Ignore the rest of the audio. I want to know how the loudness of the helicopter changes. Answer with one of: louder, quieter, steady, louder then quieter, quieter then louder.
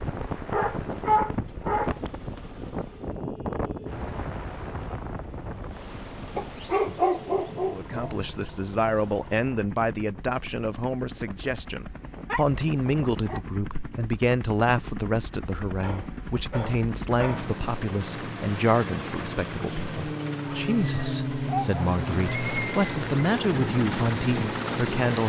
louder.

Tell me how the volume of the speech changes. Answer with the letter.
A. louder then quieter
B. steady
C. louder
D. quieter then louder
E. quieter
B.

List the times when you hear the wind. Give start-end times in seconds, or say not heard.
0.0-13.2.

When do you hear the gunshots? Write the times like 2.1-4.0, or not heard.
not heard.